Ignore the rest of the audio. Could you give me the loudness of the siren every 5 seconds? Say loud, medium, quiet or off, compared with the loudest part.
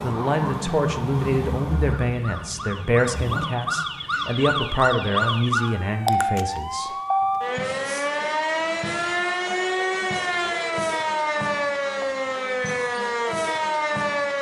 medium, loud, loud.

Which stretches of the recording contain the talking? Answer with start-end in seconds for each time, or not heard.
0.0-6.9.